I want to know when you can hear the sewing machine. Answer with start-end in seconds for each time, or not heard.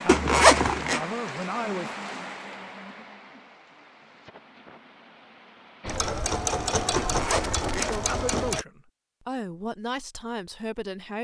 5.8-8.7.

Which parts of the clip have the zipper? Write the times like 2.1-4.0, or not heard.
0.1-1.1, 7.0-8.4.